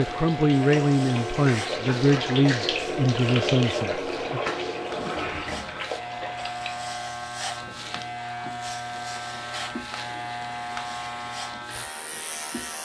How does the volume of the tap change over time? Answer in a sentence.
The loudness of the tap goes down.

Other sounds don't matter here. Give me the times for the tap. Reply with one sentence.
The tap can be heard from 0.0 to 12.8 s.